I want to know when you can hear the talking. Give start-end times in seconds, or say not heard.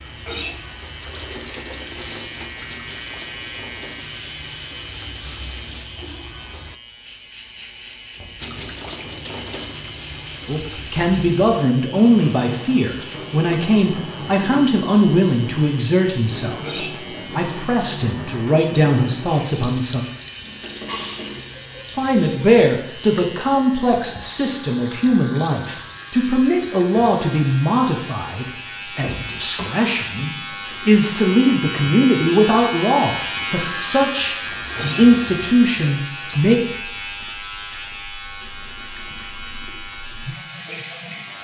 10.4-20.1, 21.9-36.6.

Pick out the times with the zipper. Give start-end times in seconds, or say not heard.
not heard.